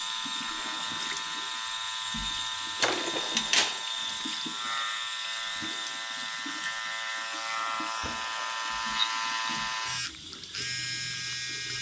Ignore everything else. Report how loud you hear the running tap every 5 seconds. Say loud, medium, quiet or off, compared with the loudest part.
loud, medium, medium.